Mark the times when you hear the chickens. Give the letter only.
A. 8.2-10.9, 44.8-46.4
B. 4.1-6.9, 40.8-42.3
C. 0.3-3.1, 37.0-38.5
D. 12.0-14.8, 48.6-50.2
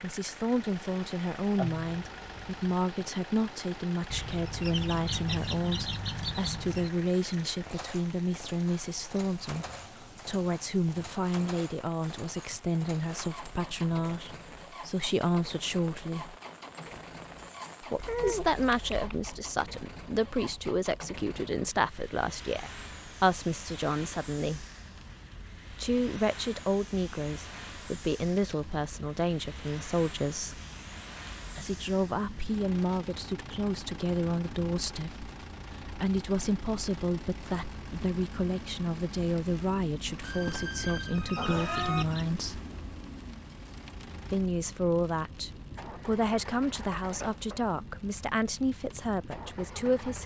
B.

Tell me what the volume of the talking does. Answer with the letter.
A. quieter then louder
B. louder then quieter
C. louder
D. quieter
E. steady
E.